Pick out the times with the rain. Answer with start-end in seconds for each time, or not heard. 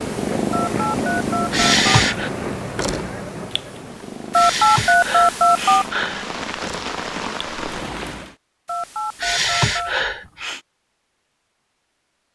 0.0-8.3.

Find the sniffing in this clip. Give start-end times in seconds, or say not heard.
1.5-2.3, 4.3-6.2, 9.2-10.6.